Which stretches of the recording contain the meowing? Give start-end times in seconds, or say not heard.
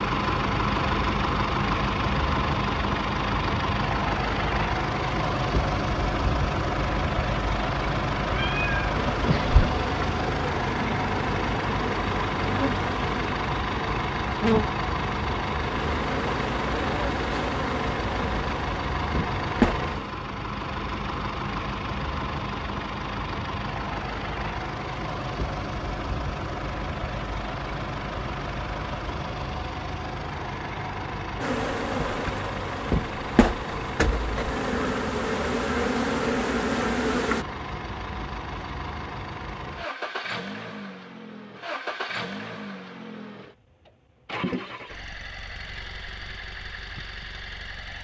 8.2-9.7.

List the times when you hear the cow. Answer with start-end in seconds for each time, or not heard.
not heard.